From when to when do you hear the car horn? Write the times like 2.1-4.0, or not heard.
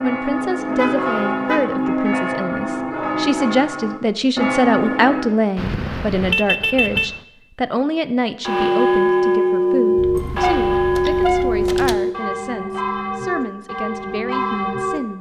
0.8-1.8, 5.5-7.1, 10.1-11.7.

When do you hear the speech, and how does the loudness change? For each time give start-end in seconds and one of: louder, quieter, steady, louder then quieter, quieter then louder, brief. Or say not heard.
0.0-15.1 louder then quieter.